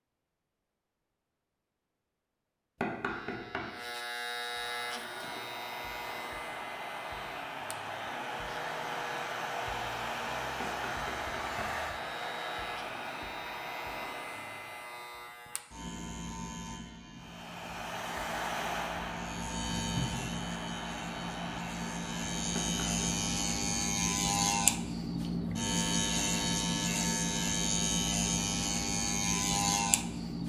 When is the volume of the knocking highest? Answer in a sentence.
The loudest moment of the knocking is at 3 seconds.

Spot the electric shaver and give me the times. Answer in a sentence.
You can hear the electric shaver from 3.0 to 30.4 s.